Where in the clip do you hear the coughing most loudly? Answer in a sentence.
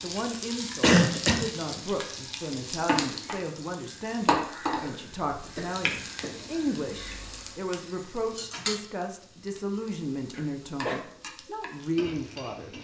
The volume of the coughing peaks at 1 second.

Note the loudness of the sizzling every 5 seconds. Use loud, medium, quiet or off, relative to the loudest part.
loud, medium, medium.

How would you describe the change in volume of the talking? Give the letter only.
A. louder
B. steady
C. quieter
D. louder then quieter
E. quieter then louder
B.